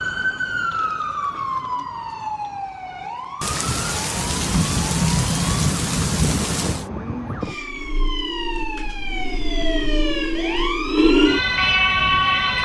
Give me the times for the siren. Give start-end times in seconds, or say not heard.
0.0-12.5.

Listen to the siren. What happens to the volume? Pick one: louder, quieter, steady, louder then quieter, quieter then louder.
quieter then louder.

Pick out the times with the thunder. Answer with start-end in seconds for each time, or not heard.
3.4-6.8.